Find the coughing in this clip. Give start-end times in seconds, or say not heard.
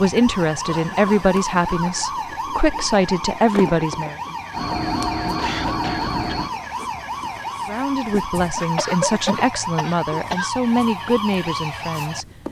0.7-2.4, 5.3-6.4, 8.6-10.5.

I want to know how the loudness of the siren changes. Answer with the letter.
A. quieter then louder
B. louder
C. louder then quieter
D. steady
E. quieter
D.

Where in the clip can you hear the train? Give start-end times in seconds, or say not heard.
4.5-6.5.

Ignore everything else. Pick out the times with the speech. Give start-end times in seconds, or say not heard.
0.0-4.2, 7.7-12.2.